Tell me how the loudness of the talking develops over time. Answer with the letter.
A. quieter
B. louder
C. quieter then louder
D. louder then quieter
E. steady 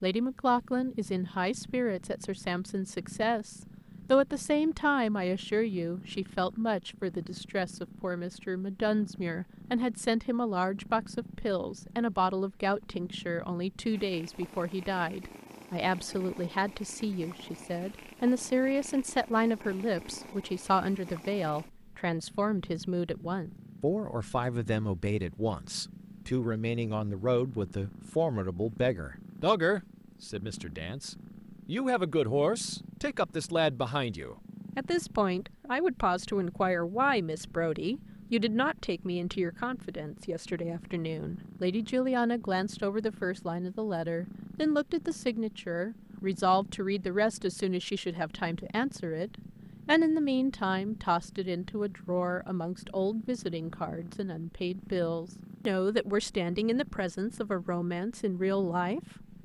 E.